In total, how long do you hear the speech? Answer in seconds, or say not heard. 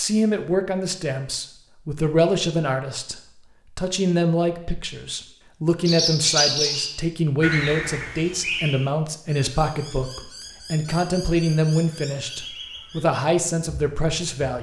14 s.